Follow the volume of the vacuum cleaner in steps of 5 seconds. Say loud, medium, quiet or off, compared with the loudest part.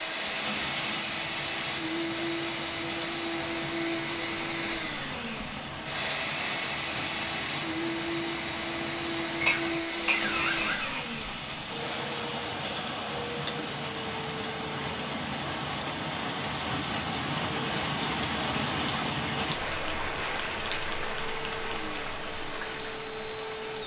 loud, loud, loud, medium, medium.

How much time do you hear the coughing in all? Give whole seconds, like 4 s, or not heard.
2 s.